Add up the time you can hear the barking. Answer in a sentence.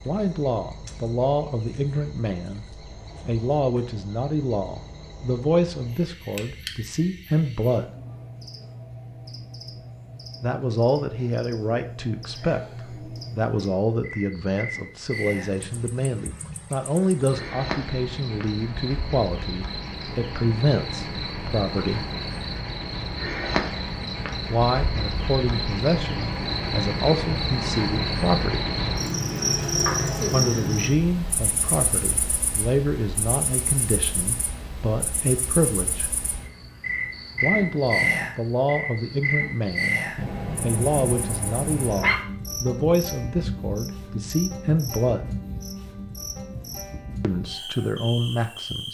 The barking can be heard for 2 seconds in total.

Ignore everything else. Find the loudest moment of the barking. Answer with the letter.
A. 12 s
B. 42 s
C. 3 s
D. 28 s
B.